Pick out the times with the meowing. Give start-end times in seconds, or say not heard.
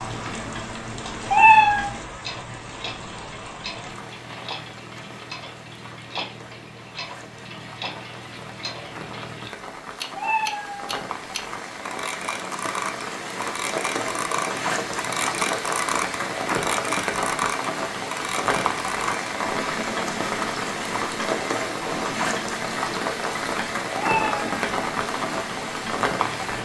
1.3-1.9, 10.2-11.1, 24.0-24.4.